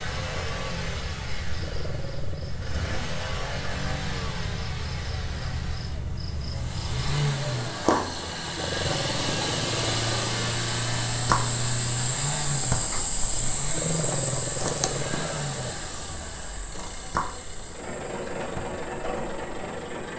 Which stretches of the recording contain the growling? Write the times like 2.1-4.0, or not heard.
1.6-2.5, 8.6-10.3, 13.7-15.8.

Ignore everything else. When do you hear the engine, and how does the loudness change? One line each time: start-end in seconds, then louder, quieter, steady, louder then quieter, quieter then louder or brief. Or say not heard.
0.0-20.1 louder then quieter.